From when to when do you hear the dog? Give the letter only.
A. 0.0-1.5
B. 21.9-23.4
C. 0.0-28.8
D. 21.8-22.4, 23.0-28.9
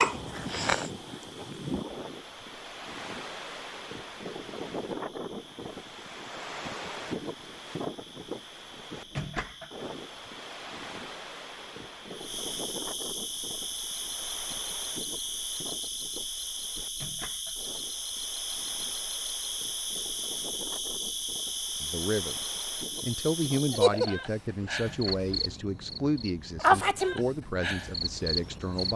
A.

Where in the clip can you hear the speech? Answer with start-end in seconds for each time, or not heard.
21.8-22.4, 23.0-28.9.